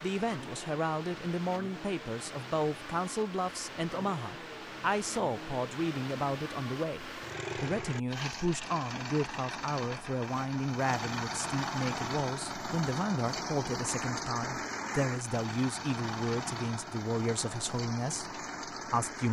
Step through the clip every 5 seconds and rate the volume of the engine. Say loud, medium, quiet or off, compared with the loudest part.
medium, loud, loud, loud.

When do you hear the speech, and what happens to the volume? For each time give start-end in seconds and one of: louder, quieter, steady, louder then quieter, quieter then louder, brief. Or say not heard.
0.0-19.2 steady.